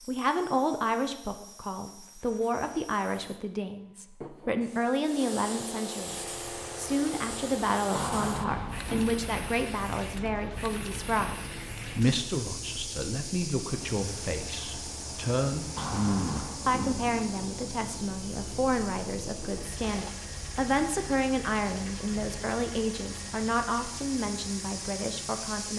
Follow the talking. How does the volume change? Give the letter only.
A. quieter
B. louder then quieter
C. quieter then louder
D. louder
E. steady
E.